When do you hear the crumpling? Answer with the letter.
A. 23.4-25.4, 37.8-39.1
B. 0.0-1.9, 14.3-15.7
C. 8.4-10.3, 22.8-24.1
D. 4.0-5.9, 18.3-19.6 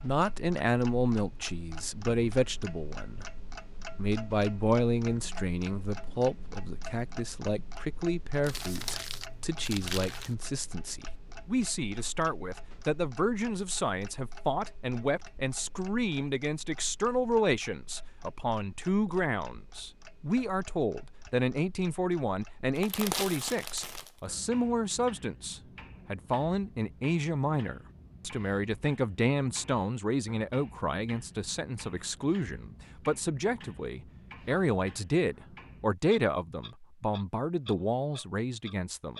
C.